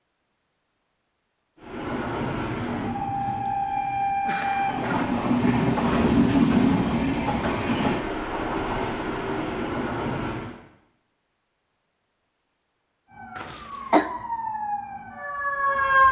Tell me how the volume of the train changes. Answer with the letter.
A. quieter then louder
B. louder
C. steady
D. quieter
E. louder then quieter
E.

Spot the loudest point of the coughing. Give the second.
14 s.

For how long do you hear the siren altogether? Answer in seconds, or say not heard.
3 s.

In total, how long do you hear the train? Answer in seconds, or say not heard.
9 s.